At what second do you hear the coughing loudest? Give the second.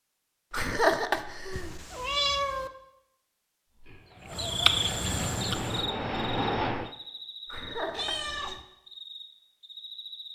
1 s.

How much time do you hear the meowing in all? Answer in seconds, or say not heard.
2 s.